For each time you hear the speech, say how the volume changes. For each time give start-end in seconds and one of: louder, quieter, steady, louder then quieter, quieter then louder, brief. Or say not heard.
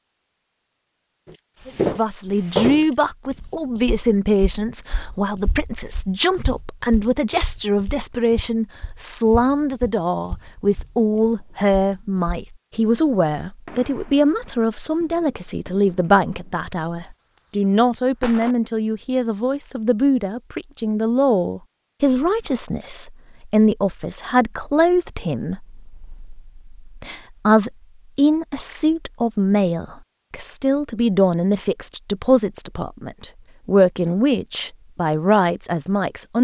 1.6-36.3 steady.